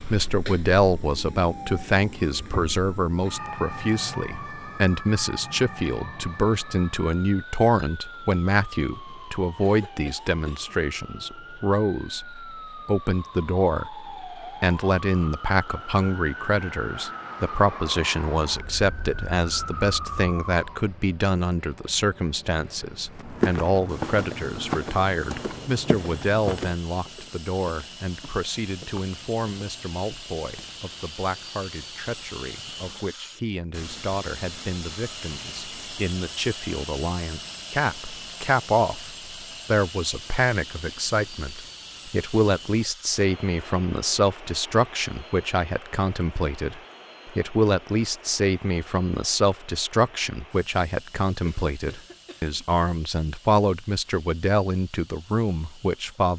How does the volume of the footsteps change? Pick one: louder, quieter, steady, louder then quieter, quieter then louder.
quieter.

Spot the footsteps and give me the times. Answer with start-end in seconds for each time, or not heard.
23.1-30.8.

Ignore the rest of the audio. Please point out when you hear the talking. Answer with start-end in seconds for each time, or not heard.
0.1-56.3.